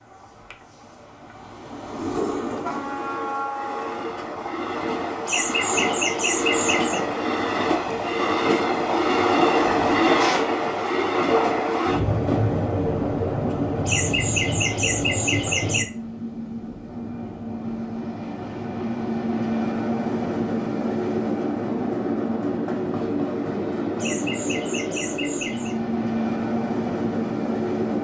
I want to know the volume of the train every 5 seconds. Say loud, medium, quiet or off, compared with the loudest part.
medium, loud, loud, medium, loud, loud.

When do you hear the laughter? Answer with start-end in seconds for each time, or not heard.
5.2-7.0, 13.8-15.8, 23.9-25.8.